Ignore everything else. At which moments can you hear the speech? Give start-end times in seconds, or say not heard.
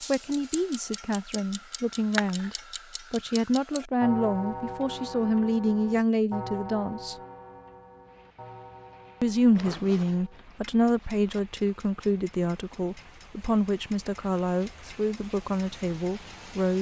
0.1-7.2, 9.2-16.7.